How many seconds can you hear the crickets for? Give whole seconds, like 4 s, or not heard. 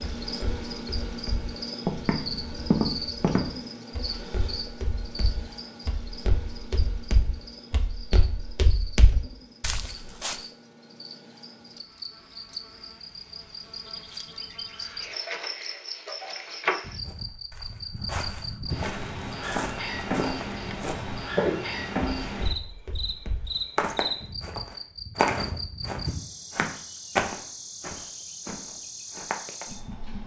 30 s.